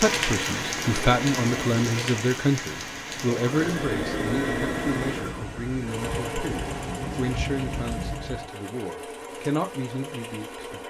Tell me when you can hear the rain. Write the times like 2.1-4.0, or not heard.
0.0-8.5.